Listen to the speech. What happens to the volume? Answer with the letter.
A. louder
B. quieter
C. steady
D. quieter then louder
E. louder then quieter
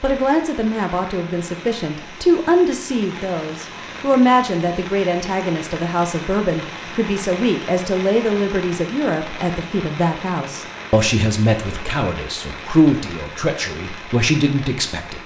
C.